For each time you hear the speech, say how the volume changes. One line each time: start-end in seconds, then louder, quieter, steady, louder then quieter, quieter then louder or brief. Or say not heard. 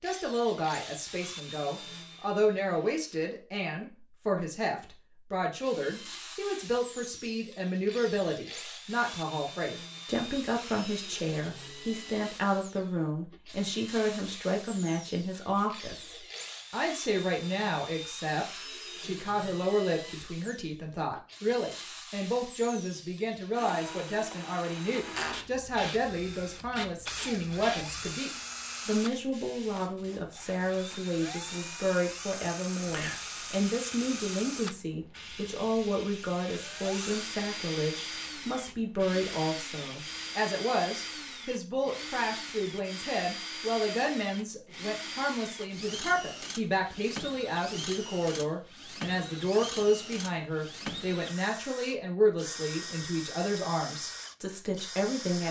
0.0-55.4 steady.